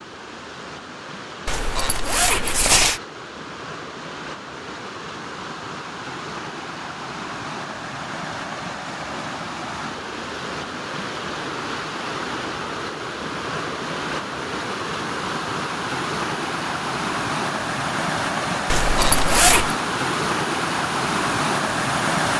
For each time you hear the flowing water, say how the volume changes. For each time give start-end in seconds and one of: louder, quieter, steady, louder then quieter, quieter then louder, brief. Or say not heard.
0.0-22.3 louder.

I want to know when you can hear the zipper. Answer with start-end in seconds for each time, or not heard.
1.4-3.0, 18.7-19.8.